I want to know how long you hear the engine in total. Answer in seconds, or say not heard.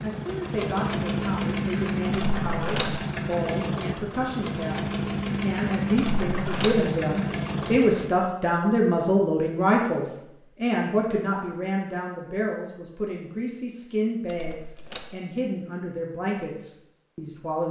8 s.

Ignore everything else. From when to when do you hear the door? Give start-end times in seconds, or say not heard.
2.1-3.0, 6.0-6.8, 14.2-15.2.